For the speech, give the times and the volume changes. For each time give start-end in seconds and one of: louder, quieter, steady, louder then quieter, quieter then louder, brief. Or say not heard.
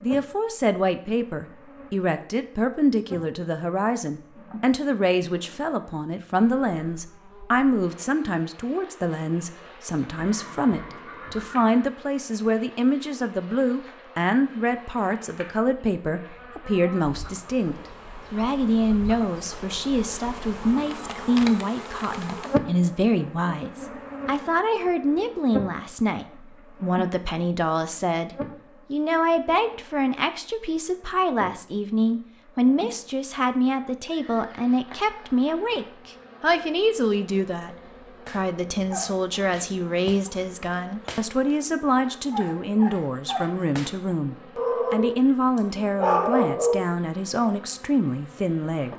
0.0-28.3 steady
28.9-48.9 steady.